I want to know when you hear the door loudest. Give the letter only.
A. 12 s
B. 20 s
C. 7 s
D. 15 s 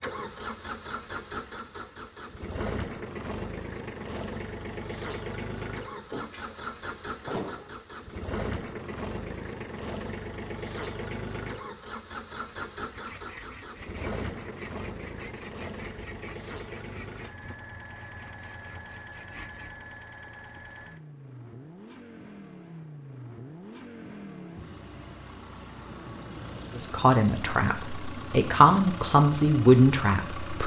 C.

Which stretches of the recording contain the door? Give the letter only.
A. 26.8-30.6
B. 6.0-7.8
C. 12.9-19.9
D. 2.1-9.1
B.